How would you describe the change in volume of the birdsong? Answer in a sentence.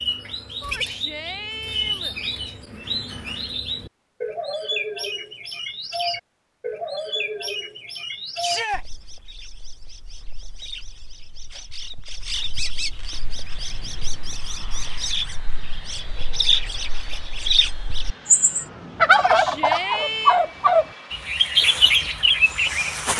The volume of the birdsong goes down, then up.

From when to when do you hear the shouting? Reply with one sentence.
You can hear the shouting from 0.6 to 2.1 s, from 8.4 to 8.8 s and from 19.1 to 20.4 s.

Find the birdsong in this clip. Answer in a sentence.
The birdsong can be heard from 0.0 to 23.1 s.